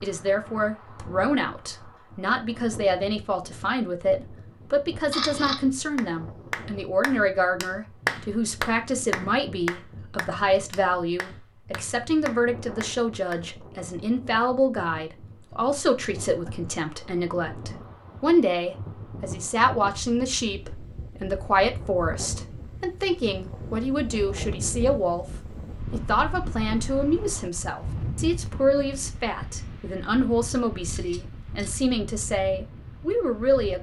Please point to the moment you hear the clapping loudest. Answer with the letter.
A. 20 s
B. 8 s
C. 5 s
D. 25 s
B.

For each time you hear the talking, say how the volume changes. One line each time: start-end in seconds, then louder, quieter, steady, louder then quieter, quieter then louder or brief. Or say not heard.
0.0-25.2 steady
25.9-33.7 steady.